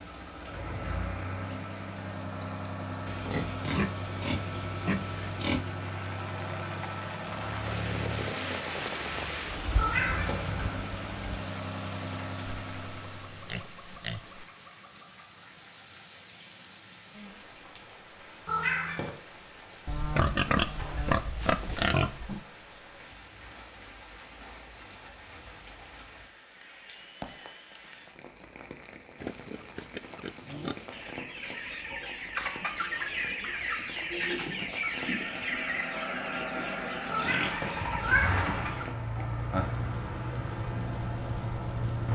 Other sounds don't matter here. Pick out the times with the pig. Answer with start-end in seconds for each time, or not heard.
3.0-5.7, 12.7-14.4, 19.9-22.4, 29.2-31.1, 37.1-38.8.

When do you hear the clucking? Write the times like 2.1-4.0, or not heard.
30.2-39.9.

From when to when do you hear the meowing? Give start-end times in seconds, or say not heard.
9.8-10.8, 18.4-19.1, 37.1-38.5.